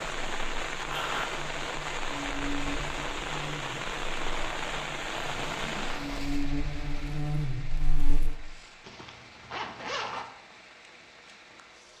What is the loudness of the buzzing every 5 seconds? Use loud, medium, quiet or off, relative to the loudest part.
medium, loud, off.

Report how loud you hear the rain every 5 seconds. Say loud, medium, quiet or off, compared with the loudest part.
loud, medium, quiet.